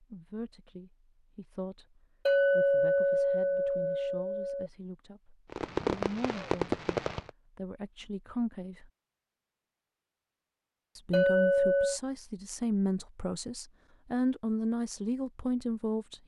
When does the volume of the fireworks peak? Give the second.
6 s.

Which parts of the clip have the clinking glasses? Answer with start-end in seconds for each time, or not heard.
2.2-4.7, 11.1-12.0.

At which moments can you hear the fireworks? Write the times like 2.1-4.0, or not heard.
5.5-7.3.